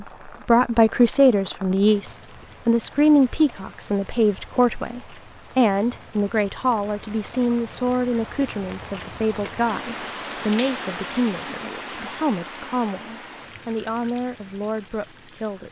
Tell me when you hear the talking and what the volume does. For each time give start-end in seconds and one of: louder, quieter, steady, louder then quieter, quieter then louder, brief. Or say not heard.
0.0-15.6 quieter.